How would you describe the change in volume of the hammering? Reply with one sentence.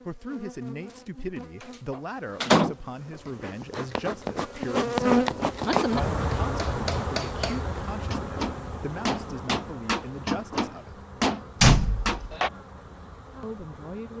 The loudness of the hammering goes up.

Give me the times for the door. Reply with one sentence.
The door can be heard from 1.9 to 2.8 s and from 11.6 to 12.3 s.